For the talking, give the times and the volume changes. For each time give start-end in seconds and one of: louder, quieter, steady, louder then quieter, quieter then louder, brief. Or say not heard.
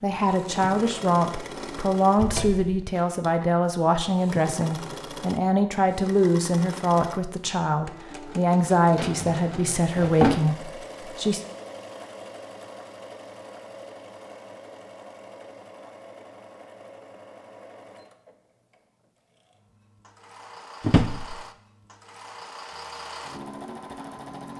0.0-11.4 steady.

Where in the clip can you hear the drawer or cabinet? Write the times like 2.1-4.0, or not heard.
2.1-2.9, 8.9-10.4, 20.8-21.4.